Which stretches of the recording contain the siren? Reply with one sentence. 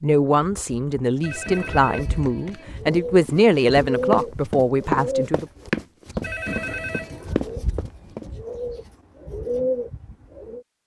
The siren can't be heard in this clip.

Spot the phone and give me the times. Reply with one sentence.
The phone can be heard from 1.2 to 2.6 s and from 6.2 to 7.3 s.